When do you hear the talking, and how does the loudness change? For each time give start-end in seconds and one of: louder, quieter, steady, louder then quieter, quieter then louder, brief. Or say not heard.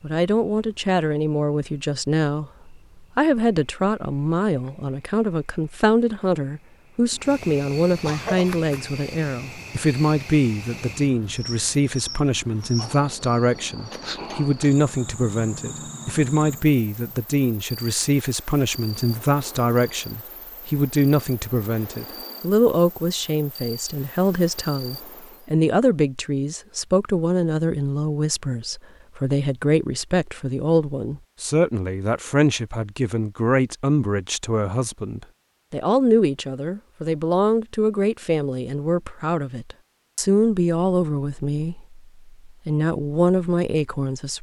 0.0-44.3 steady.